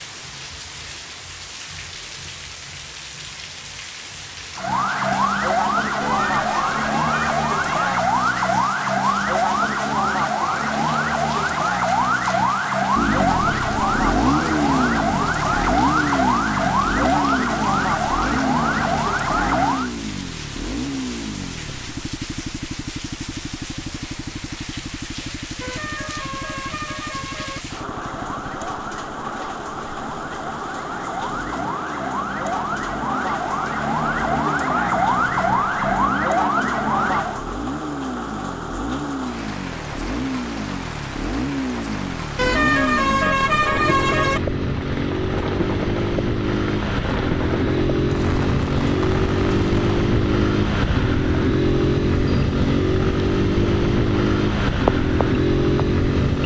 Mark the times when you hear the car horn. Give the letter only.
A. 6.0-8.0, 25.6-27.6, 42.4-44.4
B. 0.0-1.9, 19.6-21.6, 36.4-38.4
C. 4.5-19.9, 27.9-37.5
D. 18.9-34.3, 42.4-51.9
A.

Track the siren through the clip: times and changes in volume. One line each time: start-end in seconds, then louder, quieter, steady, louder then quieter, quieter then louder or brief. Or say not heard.
4.5-19.9 steady
27.9-37.5 louder.